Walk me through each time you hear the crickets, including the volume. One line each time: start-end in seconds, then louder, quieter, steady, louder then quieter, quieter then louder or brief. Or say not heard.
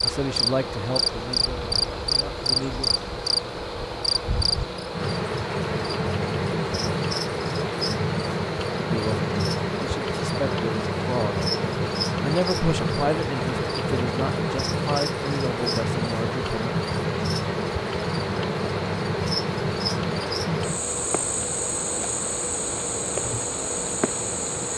0.0-24.7 steady.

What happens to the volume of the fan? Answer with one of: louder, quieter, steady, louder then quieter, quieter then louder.
steady.